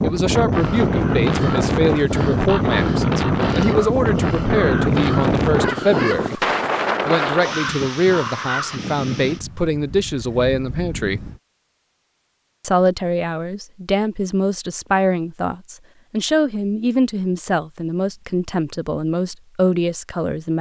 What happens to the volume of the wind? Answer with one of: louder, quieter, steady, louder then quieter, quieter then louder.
quieter.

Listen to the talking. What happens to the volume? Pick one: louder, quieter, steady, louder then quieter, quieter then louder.
steady.